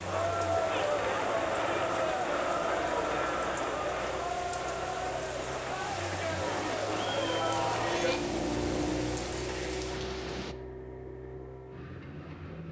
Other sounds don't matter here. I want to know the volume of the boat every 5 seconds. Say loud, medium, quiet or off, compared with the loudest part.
medium, loud, medium.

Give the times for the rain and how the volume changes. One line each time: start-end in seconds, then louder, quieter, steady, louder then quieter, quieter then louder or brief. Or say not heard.
0.0-10.6 steady.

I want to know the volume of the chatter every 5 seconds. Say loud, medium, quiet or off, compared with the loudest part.
loud, loud, off.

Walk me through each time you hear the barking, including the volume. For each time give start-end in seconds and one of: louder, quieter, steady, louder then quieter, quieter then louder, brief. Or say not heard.
not heard.